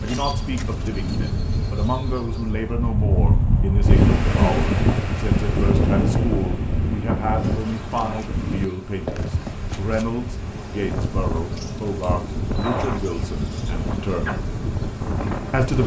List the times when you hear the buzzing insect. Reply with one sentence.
The buzzing insect can be heard from 0.0 to 2.9 s and from 7.3 to 15.8 s.